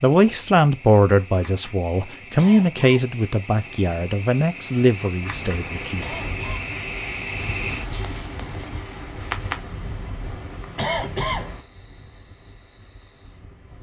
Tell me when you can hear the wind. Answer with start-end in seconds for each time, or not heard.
5.2-13.7.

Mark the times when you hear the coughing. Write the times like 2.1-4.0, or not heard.
2.4-3.0, 6.0-6.6, 10.8-11.5.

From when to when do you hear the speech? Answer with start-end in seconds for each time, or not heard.
0.0-6.2.